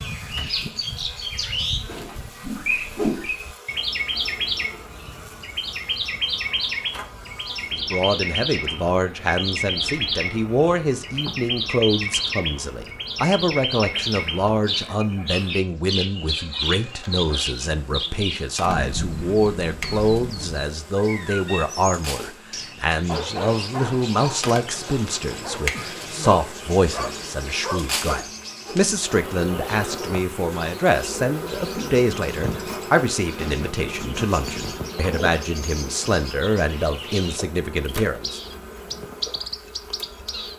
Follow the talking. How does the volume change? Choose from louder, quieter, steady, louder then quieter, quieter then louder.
steady.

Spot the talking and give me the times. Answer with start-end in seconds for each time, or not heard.
7.7-38.4.